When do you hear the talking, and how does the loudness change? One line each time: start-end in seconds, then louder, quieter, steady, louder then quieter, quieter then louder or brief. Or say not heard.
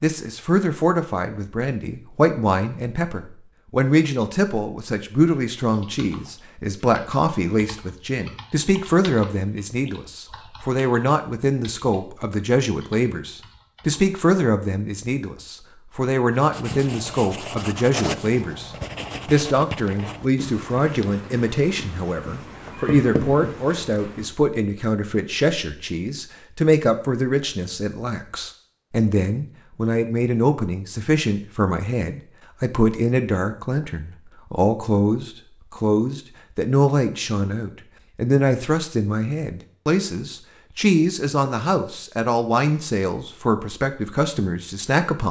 0.0-45.2 steady.